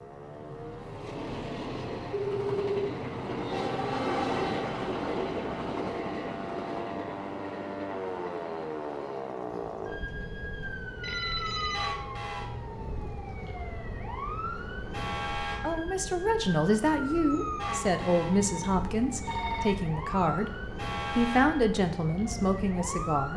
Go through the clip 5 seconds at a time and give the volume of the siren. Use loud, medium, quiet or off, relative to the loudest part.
medium, loud, loud, loud, loud.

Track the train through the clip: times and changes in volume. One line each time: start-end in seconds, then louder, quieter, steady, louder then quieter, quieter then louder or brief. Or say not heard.
0.0-23.3 quieter.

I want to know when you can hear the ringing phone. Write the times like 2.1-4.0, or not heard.
2.1-2.9, 11.0-11.9, 17.6-19.8.